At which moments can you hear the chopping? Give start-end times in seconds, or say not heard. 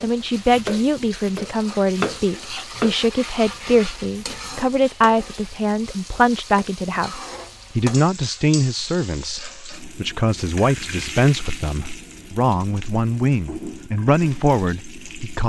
0.0-4.7.